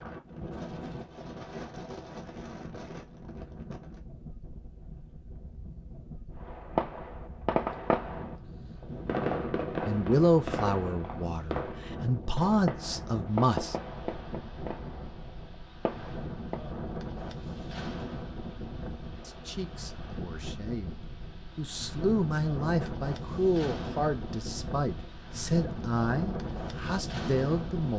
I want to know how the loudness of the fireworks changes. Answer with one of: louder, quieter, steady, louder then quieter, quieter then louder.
quieter.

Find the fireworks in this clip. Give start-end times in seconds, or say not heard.
6.4-16.8.